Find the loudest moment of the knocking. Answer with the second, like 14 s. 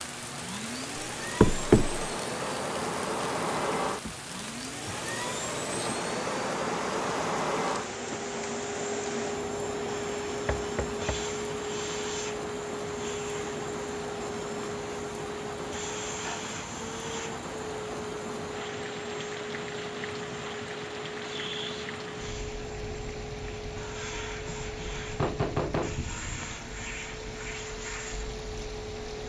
2 s.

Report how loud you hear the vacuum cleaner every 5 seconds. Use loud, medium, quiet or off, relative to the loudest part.
loud, loud, loud, medium, medium, medium.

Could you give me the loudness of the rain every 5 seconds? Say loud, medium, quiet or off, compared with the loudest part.
loud, loud, loud, loud, loud, medium.